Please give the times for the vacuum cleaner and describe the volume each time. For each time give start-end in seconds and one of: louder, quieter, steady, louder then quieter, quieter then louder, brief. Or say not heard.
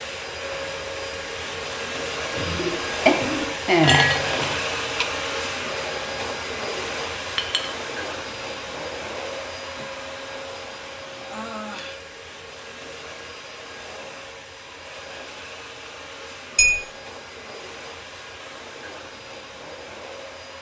0.0-20.5 quieter.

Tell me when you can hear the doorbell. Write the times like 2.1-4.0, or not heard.
not heard.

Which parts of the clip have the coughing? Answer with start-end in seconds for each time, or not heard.
2.3-3.6.